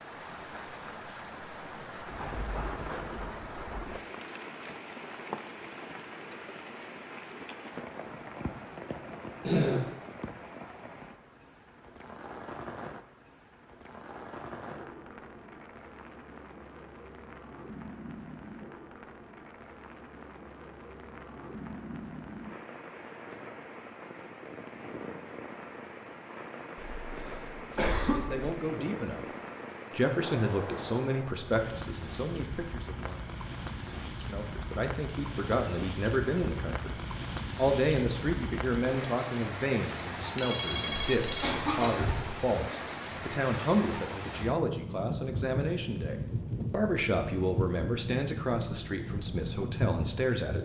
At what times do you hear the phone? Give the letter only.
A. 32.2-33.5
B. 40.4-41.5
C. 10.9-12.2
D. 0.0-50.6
B.